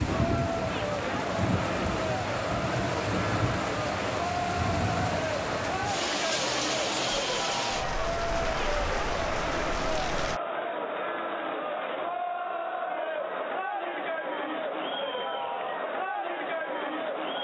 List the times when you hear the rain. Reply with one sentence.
You can hear the rain from 0.0 to 10.4 s.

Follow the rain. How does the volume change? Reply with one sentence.
The loudness of the rain stays about the same.